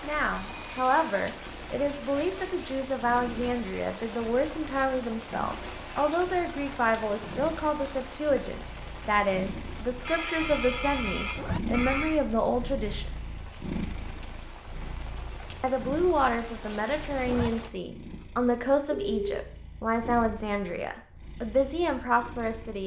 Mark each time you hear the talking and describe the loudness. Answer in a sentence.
The talking can be heard from 0.0 to 13.2 s, at a steady volume; and from 15.6 to 22.8 s, at a steady volume.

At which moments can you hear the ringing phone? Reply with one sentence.
You can hear the ringing phone from 0.3 to 1.1 s, from 10.1 to 12.2 s and from 18.9 to 19.4 s.